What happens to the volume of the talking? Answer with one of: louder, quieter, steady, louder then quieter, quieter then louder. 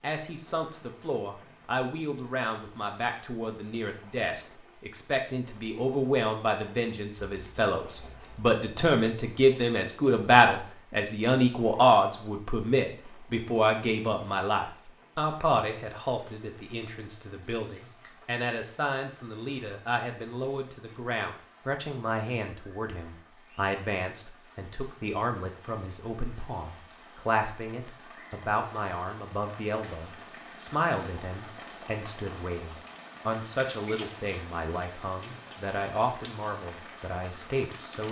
louder then quieter.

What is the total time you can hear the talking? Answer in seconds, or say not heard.
38 s.